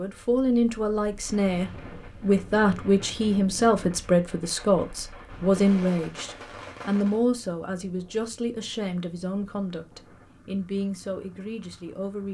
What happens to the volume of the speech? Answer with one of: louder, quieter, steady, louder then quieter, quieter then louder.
quieter.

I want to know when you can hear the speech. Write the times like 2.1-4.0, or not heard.
0.0-12.2.